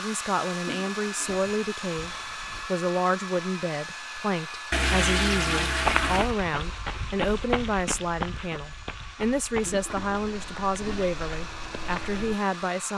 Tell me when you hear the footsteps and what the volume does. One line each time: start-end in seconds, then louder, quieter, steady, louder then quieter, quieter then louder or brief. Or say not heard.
5.8-12.3 quieter.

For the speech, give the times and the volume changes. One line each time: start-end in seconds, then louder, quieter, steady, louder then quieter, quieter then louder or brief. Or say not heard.
0.0-12.9 steady.